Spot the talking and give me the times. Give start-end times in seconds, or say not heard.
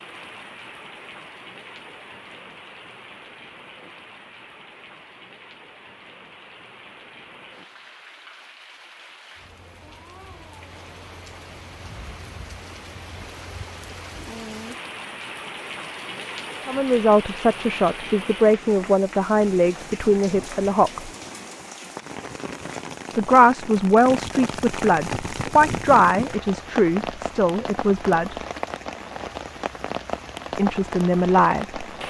16.6-21.1, 23.1-28.4, 30.6-31.9.